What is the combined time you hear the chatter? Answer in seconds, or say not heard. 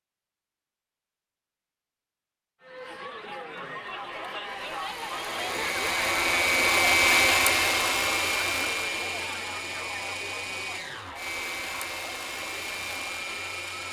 11 s.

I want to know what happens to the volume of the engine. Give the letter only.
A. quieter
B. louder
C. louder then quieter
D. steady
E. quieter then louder
C.